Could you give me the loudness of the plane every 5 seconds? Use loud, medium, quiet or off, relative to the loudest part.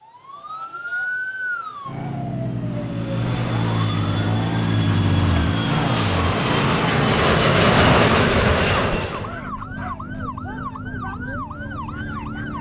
quiet, loud, off.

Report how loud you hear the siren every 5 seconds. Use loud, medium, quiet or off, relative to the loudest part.
loud, loud, medium.